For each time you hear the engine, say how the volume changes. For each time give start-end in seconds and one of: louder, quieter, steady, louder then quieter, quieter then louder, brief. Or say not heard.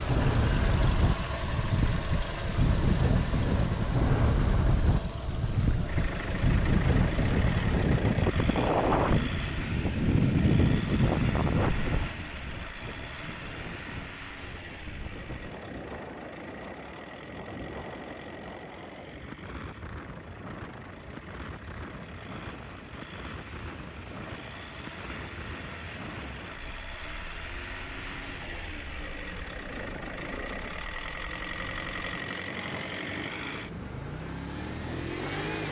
0.0-35.6 quieter then louder.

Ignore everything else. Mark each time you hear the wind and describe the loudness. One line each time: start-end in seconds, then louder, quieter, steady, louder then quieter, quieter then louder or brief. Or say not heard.
0.0-35.6 quieter.